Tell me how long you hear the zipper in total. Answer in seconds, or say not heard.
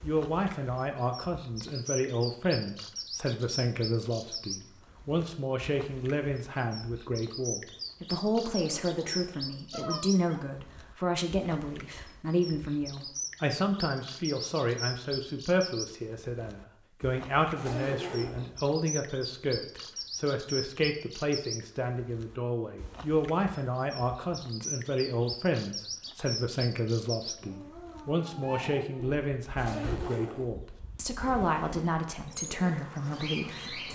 3 s.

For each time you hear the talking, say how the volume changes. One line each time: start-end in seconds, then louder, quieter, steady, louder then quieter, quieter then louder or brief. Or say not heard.
0.0-33.8 steady.